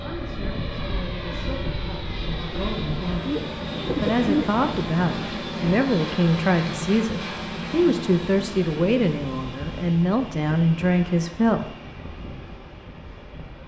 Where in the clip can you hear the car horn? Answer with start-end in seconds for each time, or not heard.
not heard.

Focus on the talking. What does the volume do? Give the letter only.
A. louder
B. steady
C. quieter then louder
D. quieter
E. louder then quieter
A.